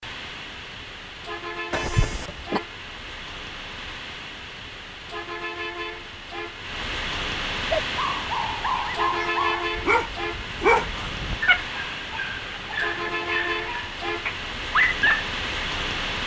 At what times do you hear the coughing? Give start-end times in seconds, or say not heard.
1.7-2.6.